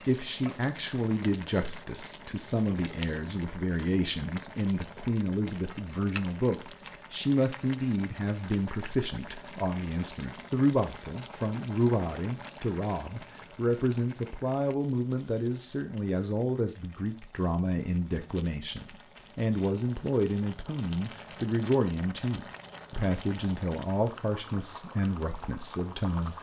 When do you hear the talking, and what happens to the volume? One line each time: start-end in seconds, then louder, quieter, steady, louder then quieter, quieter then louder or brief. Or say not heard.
0.1-26.3 steady.